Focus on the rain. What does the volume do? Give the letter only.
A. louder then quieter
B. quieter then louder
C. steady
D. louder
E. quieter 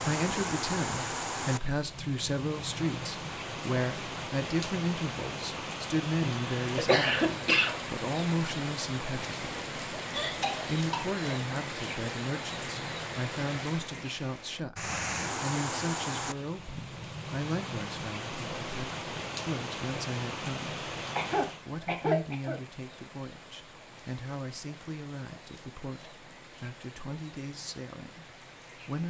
E.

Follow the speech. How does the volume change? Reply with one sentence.
The loudness of the speech goes down.